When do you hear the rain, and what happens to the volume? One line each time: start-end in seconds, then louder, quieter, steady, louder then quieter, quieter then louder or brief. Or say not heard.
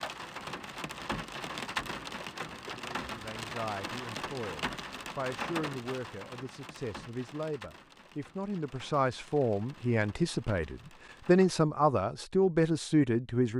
0.0-11.6 quieter.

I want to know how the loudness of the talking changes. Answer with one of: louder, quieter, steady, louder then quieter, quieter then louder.
louder.